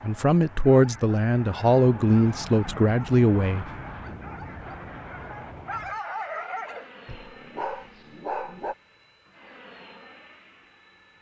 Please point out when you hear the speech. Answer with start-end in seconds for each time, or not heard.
0.0-3.6.